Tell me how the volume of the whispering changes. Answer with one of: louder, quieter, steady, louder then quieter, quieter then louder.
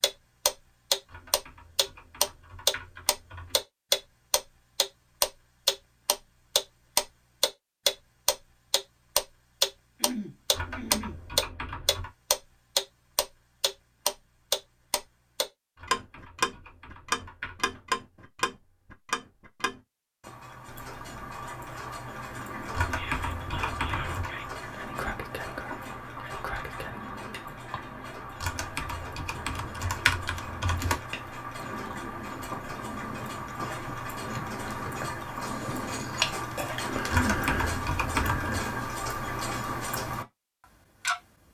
steady.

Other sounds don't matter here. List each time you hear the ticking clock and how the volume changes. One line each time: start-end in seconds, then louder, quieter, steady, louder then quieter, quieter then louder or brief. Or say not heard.
0.0-40.2 quieter then louder
41.0-41.5 brief.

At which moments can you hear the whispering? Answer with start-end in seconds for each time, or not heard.
22.9-27.0.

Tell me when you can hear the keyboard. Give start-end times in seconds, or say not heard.
1.1-3.6, 10.5-12.1, 15.8-17.9, 22.7-24.3, 28.4-31.0, 37.1-38.6.